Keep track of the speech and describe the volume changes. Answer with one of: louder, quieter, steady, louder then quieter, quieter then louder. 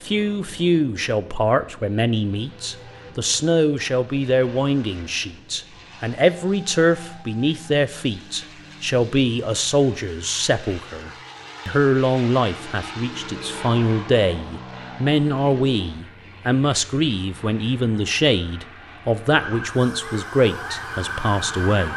steady.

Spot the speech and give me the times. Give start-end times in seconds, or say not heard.
0.0-21.9.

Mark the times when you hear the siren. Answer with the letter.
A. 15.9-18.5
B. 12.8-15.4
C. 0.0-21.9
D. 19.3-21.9
D.